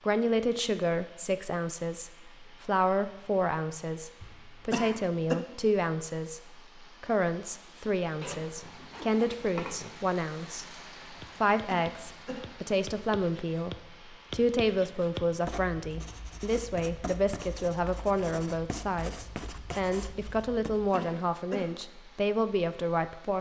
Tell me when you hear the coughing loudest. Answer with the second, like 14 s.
5 s.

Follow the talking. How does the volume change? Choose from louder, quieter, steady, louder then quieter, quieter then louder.
steady.